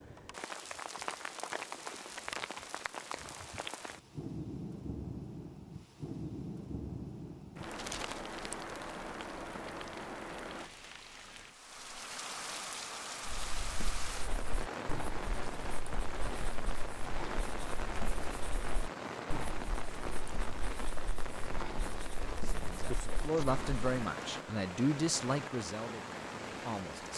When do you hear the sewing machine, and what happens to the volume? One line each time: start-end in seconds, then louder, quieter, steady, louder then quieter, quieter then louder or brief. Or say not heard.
not heard.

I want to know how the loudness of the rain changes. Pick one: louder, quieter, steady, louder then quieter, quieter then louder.
steady.